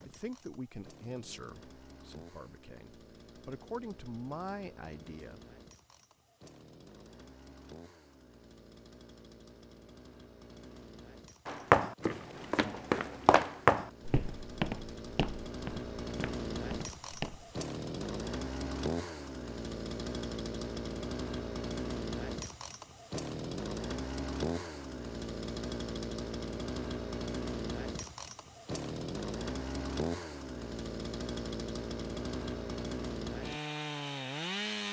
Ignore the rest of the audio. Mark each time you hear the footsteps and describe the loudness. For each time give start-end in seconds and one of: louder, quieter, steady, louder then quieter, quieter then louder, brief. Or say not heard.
11.4-17.6 louder then quieter.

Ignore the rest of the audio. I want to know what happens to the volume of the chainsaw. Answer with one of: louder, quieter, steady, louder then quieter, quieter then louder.
louder.